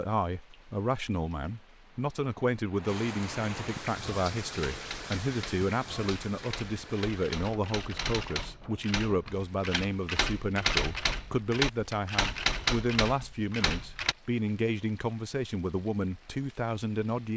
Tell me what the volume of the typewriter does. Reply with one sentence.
The volume of the typewriter goes up.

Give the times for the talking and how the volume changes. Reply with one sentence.
You can hear the talking from 0.0 to 17.3 s, at a steady volume.